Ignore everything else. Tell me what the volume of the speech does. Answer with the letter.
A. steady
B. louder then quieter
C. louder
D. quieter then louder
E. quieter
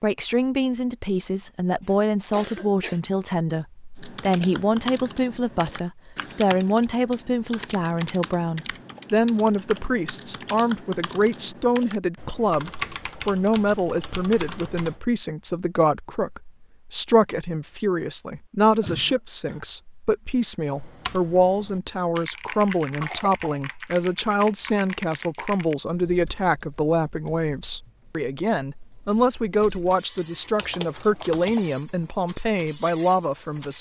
A.